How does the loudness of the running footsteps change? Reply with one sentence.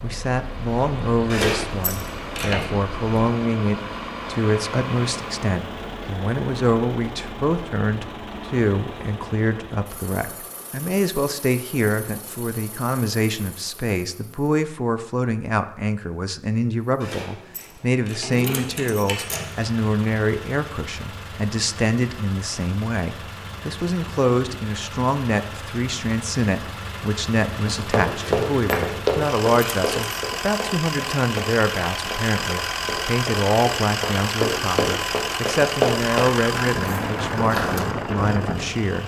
The volume of the running footsteps goes down, then up.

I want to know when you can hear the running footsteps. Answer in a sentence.
The running footsteps can be heard from 27.6 to 37.9 s.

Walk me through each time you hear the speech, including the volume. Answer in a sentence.
The speech can be heard from 0.0 to 39.0 s, at a steady volume.